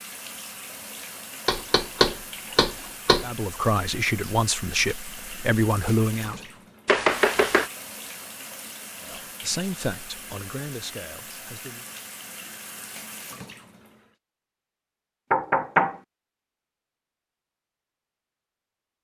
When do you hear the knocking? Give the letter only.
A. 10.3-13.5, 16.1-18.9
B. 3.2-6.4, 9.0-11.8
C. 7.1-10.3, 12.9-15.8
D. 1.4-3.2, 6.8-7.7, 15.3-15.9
D.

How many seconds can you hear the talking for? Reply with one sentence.
You can hear the talking for 6 seconds altogether.